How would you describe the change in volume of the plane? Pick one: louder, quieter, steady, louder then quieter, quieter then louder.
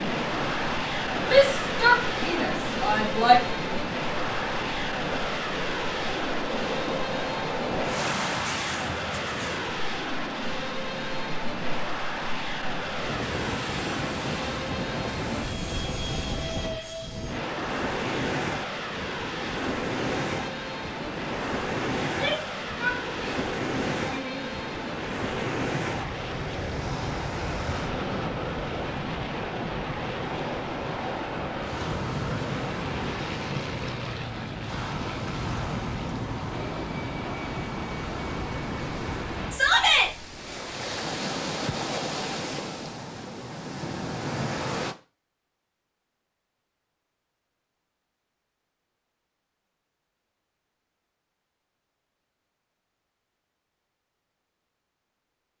quieter.